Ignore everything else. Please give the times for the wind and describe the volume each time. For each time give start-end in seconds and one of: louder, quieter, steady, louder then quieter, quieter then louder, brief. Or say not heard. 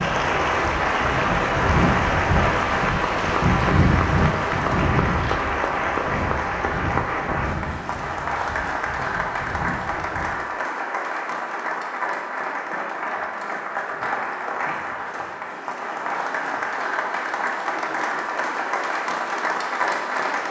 0.0-10.4 quieter.